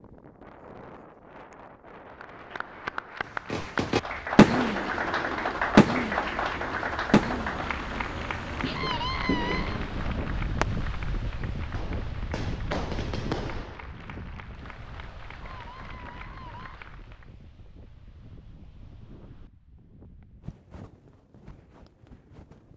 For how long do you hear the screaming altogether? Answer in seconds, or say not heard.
3 s.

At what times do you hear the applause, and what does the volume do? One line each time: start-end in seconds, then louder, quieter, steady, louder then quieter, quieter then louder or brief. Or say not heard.
2.1-17.3 quieter.